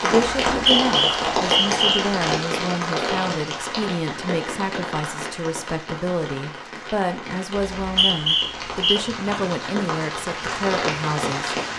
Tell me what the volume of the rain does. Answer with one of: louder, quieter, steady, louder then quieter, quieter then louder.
quieter then louder.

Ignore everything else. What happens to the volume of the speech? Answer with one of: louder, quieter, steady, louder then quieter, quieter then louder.
steady.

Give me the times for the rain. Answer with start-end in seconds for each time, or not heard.
0.0-11.7.